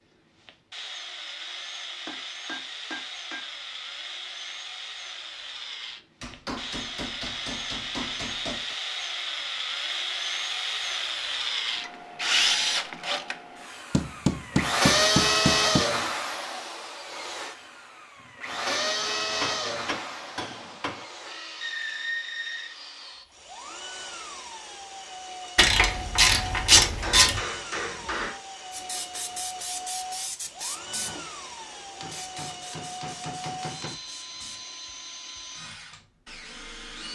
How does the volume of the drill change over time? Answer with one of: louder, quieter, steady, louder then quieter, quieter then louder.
louder then quieter.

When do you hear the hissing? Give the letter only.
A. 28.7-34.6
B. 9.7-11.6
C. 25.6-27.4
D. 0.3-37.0
A.